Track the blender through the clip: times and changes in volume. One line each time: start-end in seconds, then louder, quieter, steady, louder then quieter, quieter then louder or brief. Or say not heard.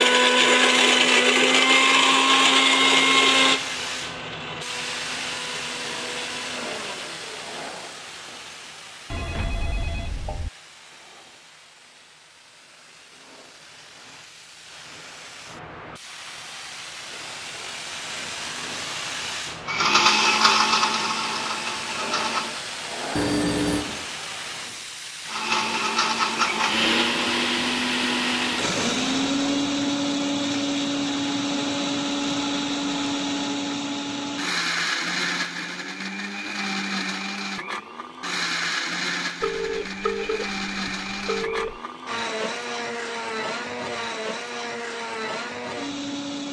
0.0-7.7 quieter
19.6-22.6 brief
25.2-46.4 quieter.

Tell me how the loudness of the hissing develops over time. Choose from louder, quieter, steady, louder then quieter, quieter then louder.
quieter then louder.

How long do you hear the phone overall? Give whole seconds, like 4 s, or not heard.
5 s.